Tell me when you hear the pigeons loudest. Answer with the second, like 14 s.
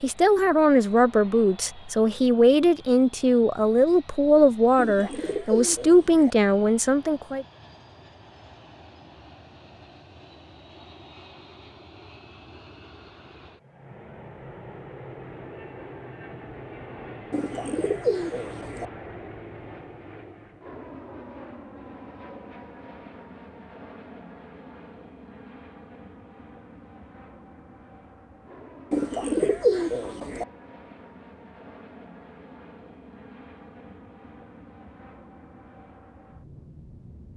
30 s.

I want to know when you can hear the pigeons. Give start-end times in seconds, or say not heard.
4.8-6.3, 17.3-18.9, 28.9-30.4.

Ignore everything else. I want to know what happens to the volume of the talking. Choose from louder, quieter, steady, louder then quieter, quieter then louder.
steady.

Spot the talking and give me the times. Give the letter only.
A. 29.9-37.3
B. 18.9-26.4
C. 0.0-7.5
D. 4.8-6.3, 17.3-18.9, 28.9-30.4
C.